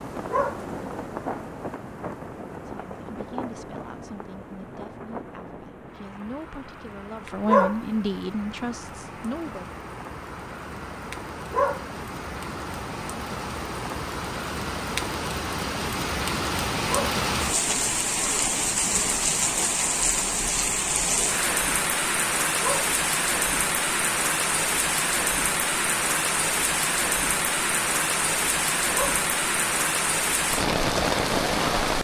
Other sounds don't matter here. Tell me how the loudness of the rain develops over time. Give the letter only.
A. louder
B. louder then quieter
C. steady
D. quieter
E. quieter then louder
A.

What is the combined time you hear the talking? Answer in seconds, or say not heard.
7 s.